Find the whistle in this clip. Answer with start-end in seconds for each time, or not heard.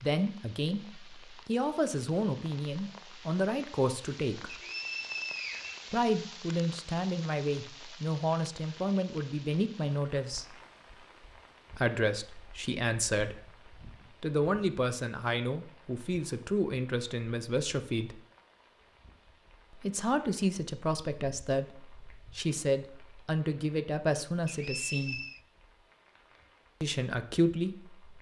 4.5-6.0, 24.4-25.4.